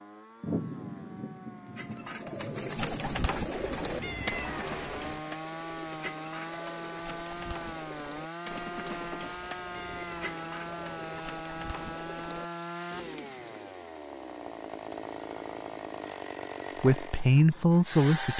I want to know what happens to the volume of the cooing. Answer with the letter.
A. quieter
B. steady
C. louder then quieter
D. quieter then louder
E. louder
A.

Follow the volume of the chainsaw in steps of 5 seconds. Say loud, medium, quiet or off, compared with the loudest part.
medium, loud, loud, loud.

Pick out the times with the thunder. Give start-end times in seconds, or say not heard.
0.4-4.2.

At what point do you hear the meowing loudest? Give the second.
4 s.